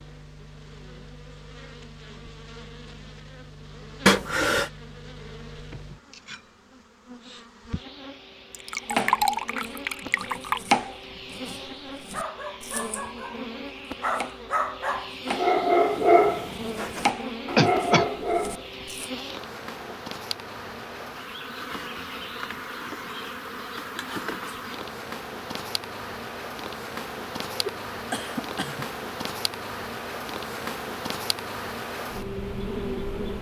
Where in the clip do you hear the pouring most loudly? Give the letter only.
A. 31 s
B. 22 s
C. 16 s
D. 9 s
D.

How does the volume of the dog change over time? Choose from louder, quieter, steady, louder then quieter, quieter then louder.
louder then quieter.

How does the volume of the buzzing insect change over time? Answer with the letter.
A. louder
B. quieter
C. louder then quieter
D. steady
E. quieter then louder
A.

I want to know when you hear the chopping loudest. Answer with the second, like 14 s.
11 s.